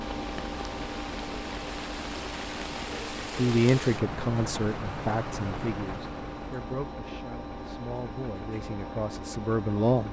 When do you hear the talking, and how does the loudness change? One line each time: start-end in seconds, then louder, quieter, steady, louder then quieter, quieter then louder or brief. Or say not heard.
3.4-10.0 quieter then louder.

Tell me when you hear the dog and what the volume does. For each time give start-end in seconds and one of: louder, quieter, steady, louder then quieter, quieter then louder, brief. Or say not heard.
not heard.